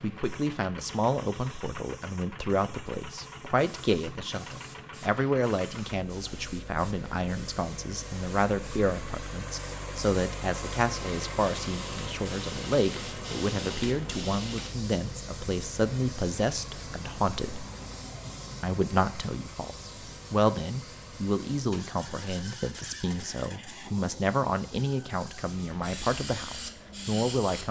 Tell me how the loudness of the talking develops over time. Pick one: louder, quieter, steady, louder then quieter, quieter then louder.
steady.